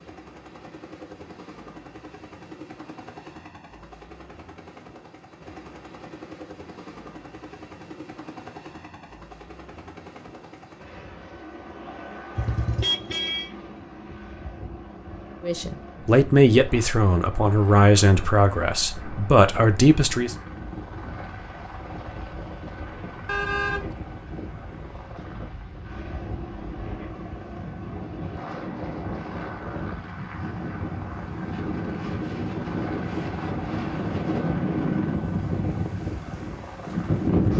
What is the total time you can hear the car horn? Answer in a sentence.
You can hear the car horn for 2 seconds altogether.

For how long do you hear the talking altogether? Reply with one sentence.
You can hear the talking for 5 seconds altogether.